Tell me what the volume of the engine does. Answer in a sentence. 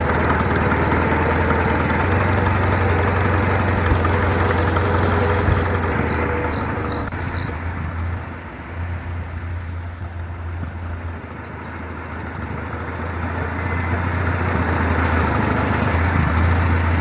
The volume of the engine goes down, then up.